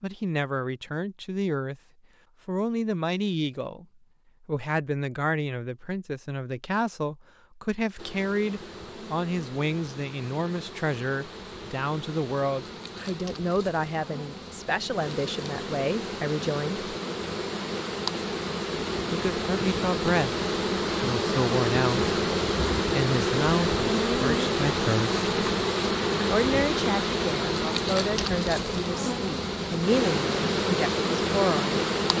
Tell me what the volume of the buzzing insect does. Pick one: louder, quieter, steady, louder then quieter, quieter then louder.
louder.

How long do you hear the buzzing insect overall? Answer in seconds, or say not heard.
24 s.